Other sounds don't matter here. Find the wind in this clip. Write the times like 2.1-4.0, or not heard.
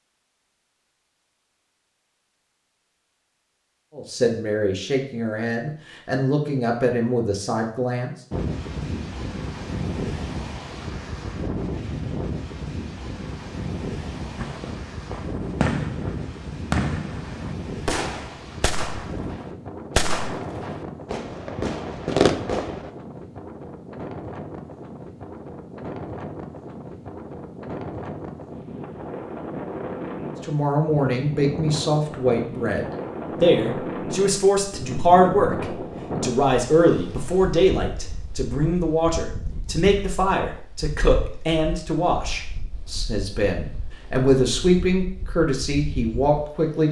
8.3-46.8.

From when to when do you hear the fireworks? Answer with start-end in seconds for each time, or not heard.
14.3-22.9.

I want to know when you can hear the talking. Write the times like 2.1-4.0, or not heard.
4.0-8.1, 30.4-46.8.